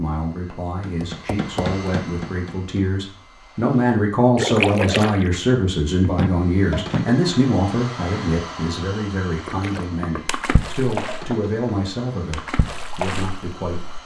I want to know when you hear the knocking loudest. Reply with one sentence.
The loudest moment of the knocking is at 7 seconds.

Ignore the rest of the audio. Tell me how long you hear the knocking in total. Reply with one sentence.
The knocking can be heard for 4 seconds in total.